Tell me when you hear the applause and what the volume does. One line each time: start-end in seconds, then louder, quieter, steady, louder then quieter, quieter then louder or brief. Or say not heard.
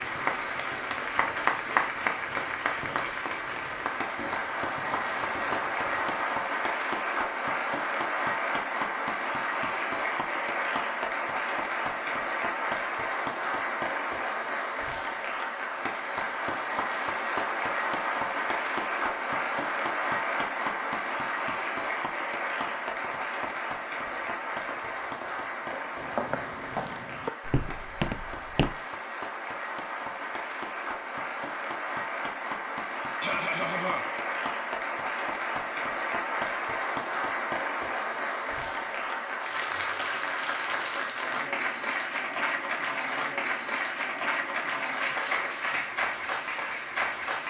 0.0-47.4 steady.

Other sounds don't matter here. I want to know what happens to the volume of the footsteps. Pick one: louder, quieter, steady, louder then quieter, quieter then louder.
louder.